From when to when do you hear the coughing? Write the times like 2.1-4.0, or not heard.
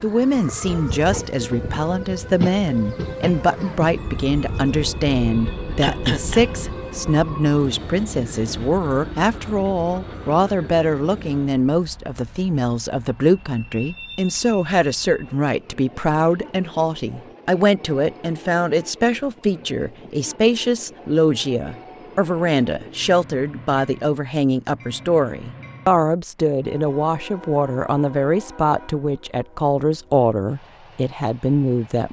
5.8-6.8.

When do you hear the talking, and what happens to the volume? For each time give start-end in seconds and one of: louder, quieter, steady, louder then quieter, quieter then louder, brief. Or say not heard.
0.0-32.0 steady.